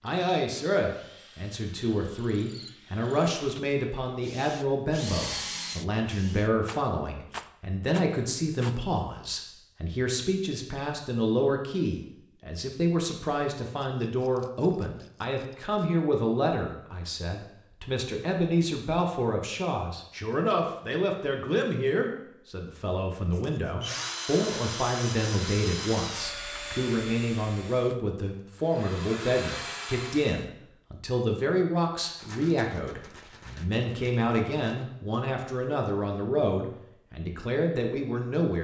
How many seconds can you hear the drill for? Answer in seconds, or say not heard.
14 s.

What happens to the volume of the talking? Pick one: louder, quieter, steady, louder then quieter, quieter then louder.
steady.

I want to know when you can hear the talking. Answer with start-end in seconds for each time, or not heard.
0.0-38.5.